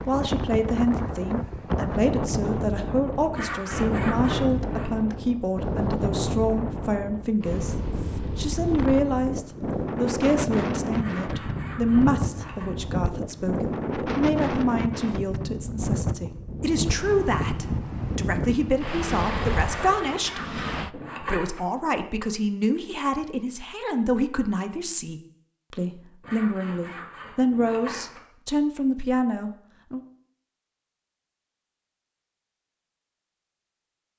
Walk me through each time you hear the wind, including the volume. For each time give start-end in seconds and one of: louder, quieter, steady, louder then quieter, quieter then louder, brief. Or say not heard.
0.0-20.9 steady.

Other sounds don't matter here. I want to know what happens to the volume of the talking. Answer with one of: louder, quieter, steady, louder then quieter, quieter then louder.
steady.